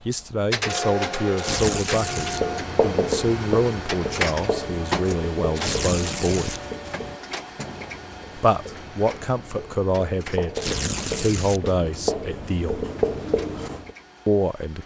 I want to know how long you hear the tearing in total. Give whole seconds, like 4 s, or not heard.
3 s.